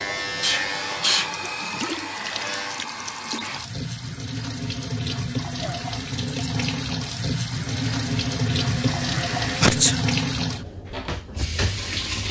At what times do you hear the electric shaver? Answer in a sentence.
You can hear the electric shaver from 0.0 to 2.9 s and from 7.5 to 9.8 s.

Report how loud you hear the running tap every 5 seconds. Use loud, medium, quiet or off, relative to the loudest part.
medium, loud, loud.